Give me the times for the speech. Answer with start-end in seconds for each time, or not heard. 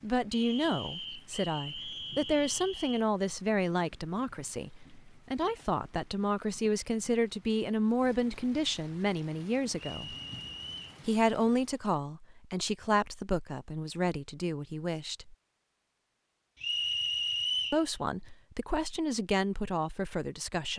0.0-10.2, 11.1-15.3, 17.7-20.7.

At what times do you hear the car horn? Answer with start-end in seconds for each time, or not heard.
not heard.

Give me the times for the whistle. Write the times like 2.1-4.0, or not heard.
0.3-3.0, 9.8-11.0, 16.6-17.9.